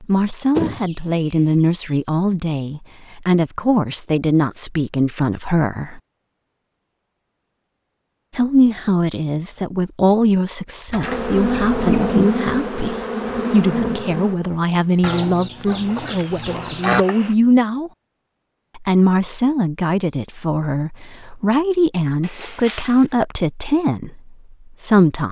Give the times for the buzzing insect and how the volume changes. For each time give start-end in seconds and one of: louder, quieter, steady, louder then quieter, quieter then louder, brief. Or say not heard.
11.0-17.4 quieter then louder.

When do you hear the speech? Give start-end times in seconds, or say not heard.
0.0-6.0, 8.3-17.9, 18.8-25.2.